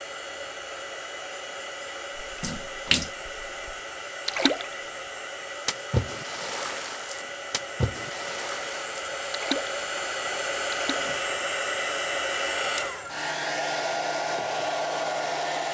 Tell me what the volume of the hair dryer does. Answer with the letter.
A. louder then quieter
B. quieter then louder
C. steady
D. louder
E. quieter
D.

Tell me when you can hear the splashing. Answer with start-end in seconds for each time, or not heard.
2.2-4.7, 5.7-9.8, 10.7-11.1.